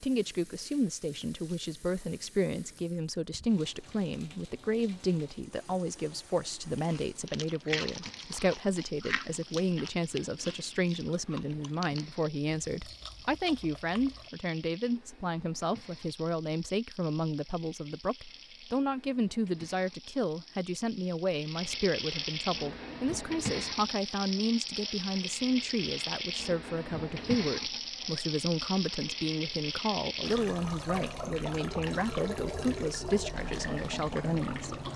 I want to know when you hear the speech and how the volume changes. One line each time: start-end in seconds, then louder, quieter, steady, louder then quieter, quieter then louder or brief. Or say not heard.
0.0-34.8 steady.